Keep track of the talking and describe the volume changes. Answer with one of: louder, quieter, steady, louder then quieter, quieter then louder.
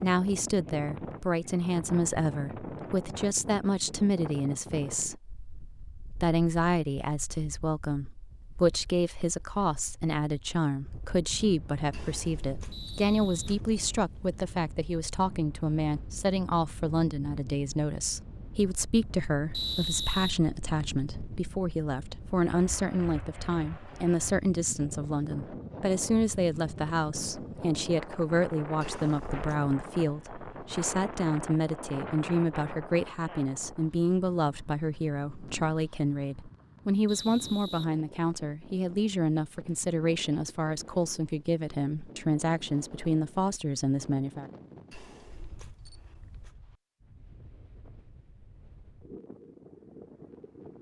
steady.